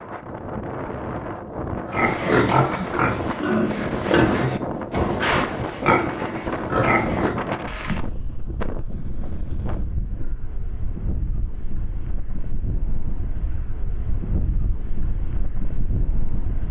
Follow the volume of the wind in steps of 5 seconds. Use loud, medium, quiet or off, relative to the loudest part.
loud, loud, medium, medium.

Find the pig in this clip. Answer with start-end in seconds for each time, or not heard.
1.9-7.4.